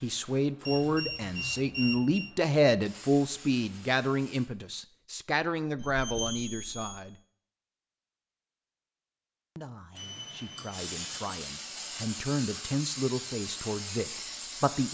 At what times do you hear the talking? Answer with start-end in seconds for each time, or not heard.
0.0-7.2, 9.6-14.8.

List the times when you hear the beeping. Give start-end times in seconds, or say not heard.
0.7-2.3, 5.8-7.0, 9.9-11.4.